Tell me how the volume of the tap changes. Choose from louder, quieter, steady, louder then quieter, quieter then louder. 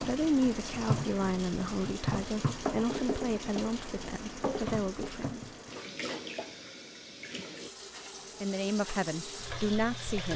quieter.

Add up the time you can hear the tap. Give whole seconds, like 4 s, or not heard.
10 s.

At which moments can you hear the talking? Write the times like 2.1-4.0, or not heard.
0.0-5.5, 8.4-10.3.